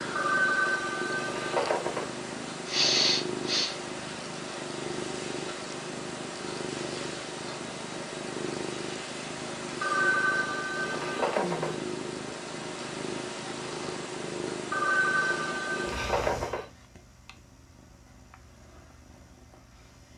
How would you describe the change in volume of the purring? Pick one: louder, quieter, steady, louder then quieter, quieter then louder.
quieter.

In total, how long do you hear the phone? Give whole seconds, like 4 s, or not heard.
6 s.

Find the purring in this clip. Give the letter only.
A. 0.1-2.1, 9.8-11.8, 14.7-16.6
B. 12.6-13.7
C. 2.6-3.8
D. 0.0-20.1
D.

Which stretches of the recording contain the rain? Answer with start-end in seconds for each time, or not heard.
not heard.